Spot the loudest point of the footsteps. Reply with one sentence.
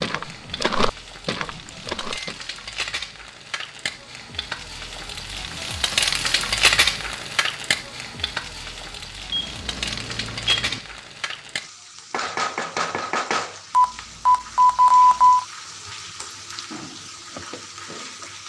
The loudest moment of the footsteps is at 1 second.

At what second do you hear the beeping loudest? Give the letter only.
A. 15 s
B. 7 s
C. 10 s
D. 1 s
A.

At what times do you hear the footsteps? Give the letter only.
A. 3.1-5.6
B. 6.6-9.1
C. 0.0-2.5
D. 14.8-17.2
C.